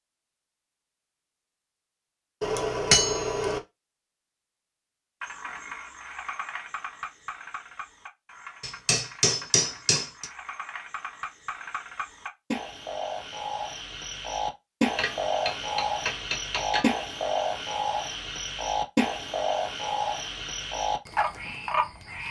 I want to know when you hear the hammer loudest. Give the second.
3 s.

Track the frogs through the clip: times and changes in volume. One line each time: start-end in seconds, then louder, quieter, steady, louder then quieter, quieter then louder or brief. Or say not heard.
5.2-22.2 louder.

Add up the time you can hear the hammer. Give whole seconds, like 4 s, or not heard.
5 s.